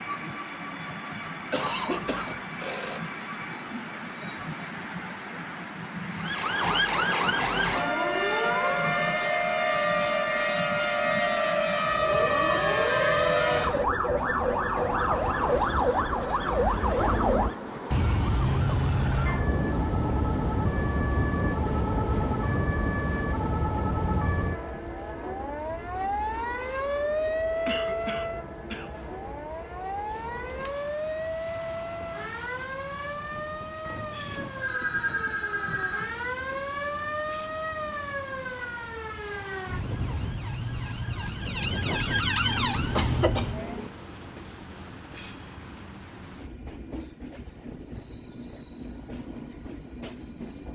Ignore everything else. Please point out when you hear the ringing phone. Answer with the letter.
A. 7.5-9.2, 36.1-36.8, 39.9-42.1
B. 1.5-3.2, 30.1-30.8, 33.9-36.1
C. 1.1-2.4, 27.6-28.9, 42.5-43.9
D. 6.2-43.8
B.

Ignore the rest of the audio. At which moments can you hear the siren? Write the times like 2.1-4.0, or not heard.
6.2-43.8.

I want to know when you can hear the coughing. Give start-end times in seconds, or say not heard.
1.1-2.4, 27.6-28.9, 42.5-43.9.